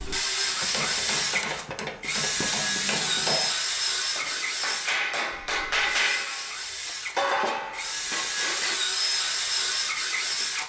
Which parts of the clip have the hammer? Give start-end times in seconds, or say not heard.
0.5-8.8.